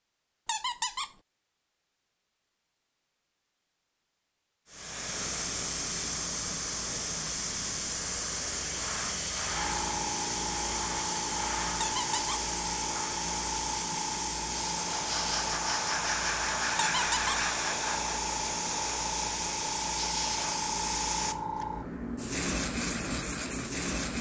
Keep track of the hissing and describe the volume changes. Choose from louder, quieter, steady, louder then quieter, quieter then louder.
steady.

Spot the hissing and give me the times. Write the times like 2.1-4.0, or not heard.
4.7-24.1.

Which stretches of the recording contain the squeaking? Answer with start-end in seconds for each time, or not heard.
0.5-1.1, 11.8-12.4, 16.8-17.4.